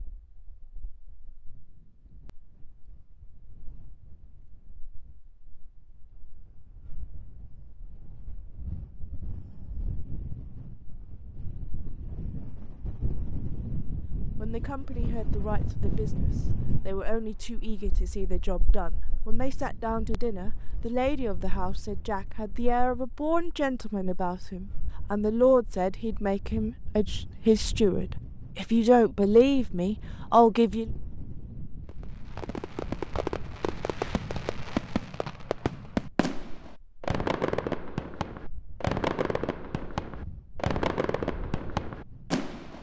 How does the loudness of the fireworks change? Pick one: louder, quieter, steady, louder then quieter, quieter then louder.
steady.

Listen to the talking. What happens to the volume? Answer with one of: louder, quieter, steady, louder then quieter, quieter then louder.
louder.